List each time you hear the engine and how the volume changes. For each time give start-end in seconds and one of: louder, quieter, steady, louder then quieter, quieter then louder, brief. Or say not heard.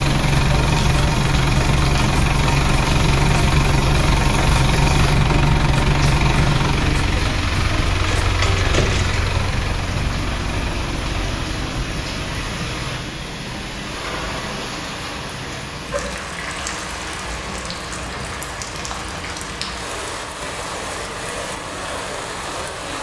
0.0-22.9 quieter.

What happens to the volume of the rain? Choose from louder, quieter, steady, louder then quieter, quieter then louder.
steady.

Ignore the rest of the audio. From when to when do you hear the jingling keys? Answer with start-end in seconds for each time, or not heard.
8.1-9.2.